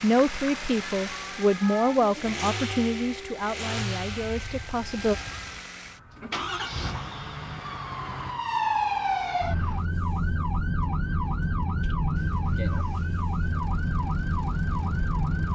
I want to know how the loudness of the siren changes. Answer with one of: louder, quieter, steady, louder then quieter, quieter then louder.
quieter then louder.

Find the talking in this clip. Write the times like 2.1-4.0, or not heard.
0.0-5.2.